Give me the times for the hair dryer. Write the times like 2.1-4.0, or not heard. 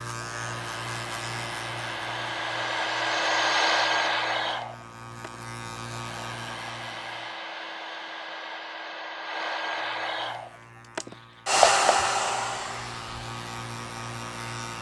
0.1-14.7.